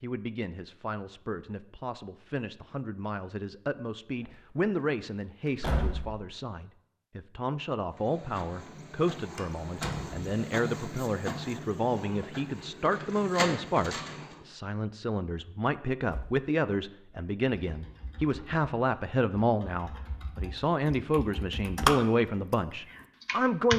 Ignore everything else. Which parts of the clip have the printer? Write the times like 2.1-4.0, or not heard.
8.0-14.4.